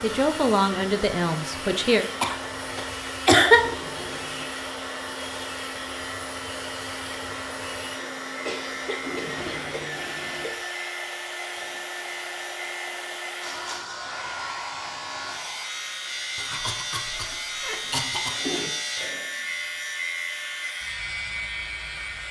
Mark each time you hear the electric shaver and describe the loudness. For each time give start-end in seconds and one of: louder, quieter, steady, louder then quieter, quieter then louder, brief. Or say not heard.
0.0-22.2 louder.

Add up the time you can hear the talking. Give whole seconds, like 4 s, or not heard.
2 s.